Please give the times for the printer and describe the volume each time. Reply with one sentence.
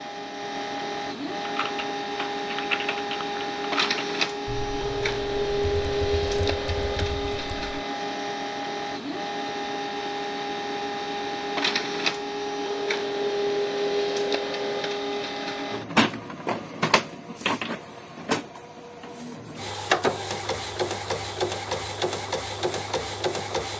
You can hear the printer from 0.0 to 23.7 s, at a steady volume.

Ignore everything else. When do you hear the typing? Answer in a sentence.
The typing can be heard from 1.4 to 7.8 s.